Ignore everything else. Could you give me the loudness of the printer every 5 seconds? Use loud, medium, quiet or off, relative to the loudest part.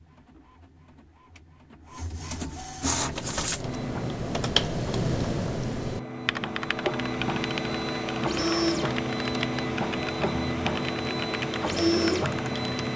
medium, loud, loud.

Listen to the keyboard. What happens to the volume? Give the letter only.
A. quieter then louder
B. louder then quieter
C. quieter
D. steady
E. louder
C.